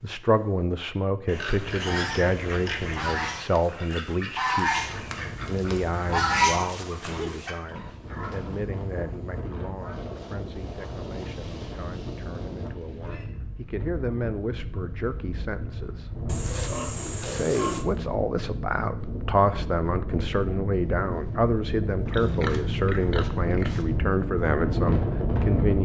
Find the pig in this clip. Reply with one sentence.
The pig can be heard from 1.2 to 3.1 s, from 7.0 to 8.7 s, from 16.2 to 17.9 s and from 22.1 to 23.9 s.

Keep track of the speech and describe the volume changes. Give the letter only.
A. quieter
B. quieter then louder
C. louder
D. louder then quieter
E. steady
B.